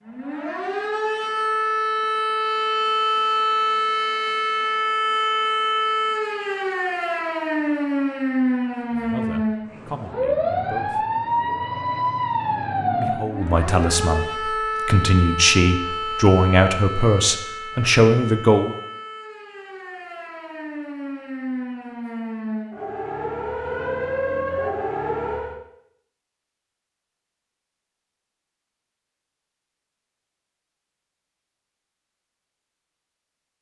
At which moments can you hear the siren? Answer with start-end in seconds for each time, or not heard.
0.0-25.6.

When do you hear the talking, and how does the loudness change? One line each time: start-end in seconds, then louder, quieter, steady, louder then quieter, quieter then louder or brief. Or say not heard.
8.9-11.1 brief
12.9-18.8 louder.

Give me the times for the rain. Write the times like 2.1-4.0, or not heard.
not heard.